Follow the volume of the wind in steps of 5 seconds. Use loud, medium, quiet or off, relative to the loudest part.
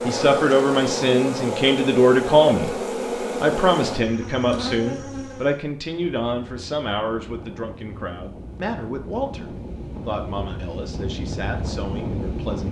off, medium, loud.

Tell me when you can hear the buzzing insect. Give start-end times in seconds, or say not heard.
0.0-5.5.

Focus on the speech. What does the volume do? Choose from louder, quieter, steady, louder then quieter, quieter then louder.
quieter.